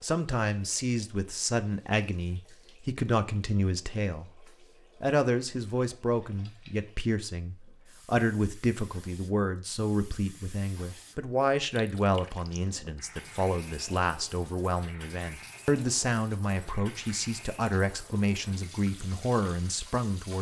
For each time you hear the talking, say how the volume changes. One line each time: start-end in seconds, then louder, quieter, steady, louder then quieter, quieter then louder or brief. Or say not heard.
0.0-20.3 steady.